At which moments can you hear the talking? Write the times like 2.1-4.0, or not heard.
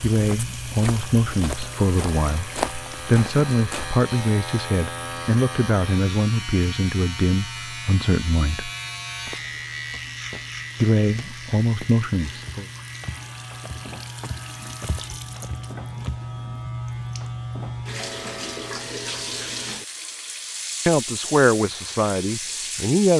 0.0-8.7, 10.8-12.7, 20.9-23.1.